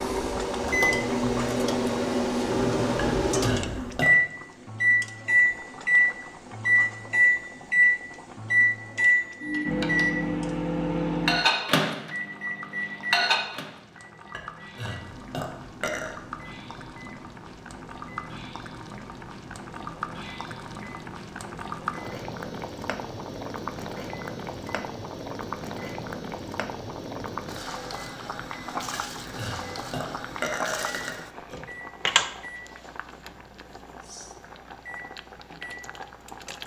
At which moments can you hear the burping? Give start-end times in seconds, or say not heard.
3.0-4.1, 14.3-16.1, 28.9-31.6.